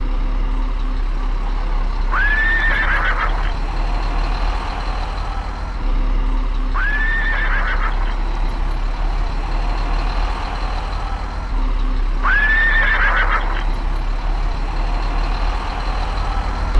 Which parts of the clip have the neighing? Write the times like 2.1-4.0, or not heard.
2.1-3.5, 6.7-8.2, 12.2-13.7.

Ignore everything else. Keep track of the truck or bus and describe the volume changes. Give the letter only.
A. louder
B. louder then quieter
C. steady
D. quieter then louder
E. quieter
C.